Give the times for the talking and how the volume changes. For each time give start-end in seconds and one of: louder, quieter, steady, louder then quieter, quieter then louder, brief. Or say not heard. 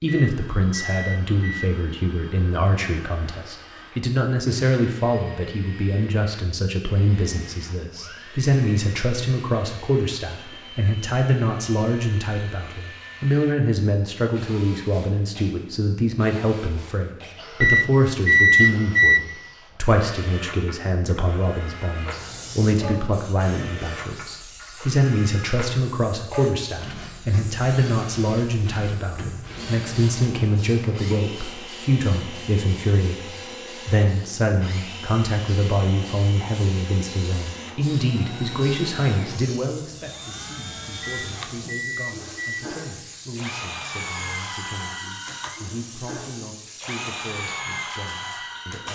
0.0-48.9 quieter.